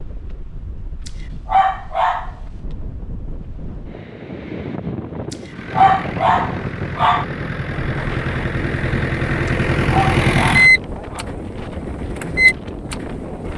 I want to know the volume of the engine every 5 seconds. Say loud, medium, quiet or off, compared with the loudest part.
off, medium, loud.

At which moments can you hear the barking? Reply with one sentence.
You can hear the barking from 1.1 to 2.3 s, from 5.3 to 7.2 s and from 9.4 to 11.2 s.